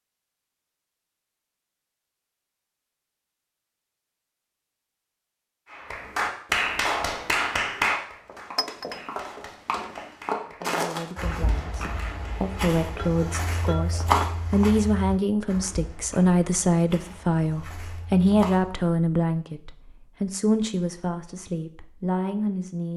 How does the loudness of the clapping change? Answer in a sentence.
The loudness of the clapping goes down.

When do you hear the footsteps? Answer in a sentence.
You can hear the footsteps from 8.1 to 18.9 s.